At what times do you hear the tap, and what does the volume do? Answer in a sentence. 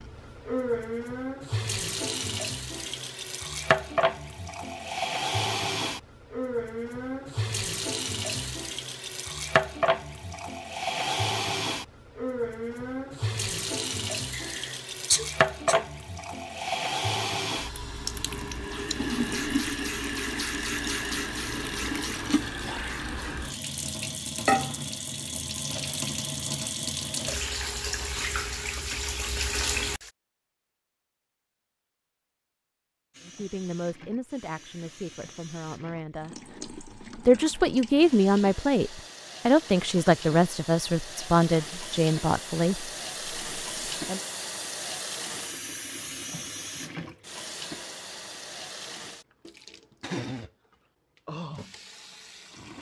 You can hear the tap from 0.0 to 30.1 s, at a steady volume; and from 33.1 to 52.7 s, getting louder.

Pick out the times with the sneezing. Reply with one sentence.
You can hear the sneezing from 14.3 to 15.8 s.